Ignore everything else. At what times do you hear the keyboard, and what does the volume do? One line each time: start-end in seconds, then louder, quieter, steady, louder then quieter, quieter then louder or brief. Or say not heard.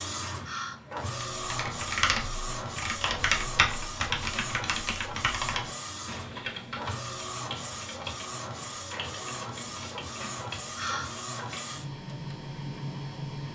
1.4-11.8 quieter.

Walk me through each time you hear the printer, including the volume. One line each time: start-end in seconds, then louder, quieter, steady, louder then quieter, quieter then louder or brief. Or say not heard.
0.0-13.4 steady.